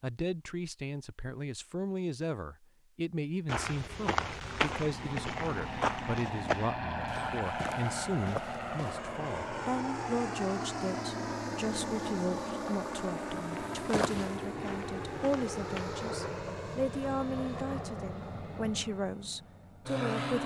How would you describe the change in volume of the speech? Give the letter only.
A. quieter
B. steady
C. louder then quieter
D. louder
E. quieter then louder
B.